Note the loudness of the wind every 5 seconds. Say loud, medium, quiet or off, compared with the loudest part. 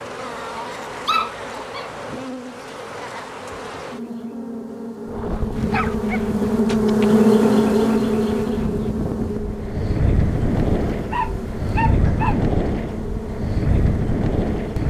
off, medium, loud.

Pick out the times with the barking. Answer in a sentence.
The barking can be heard from 0.6 to 1.9 s, from 5.7 to 7.0 s and from 10.9 to 12.6 s.